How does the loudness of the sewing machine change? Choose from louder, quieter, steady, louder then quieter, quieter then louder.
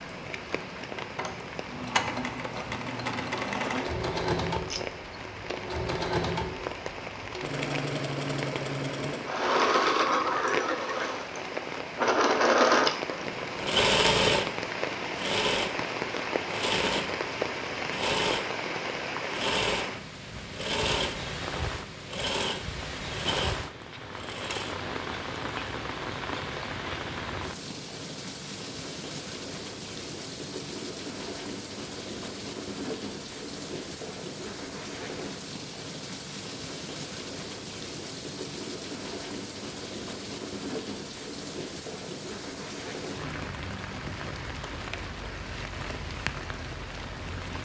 louder then quieter.